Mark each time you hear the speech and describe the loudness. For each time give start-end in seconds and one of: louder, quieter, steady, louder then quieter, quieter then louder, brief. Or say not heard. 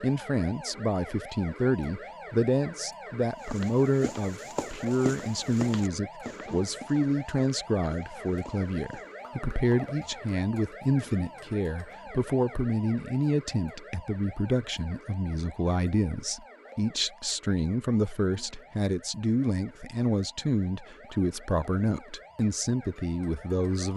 0.0-23.9 steady.